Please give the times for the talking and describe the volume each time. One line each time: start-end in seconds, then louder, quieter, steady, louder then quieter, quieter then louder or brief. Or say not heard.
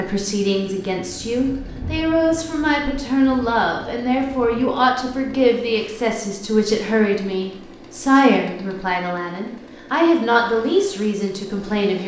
0.0-12.0 steady.